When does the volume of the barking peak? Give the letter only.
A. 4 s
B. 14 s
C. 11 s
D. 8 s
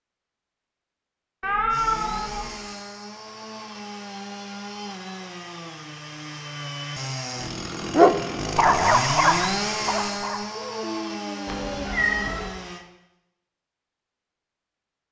D.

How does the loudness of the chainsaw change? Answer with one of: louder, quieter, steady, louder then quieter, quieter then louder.
louder then quieter.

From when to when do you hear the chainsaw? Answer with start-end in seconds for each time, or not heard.
1.7-12.8.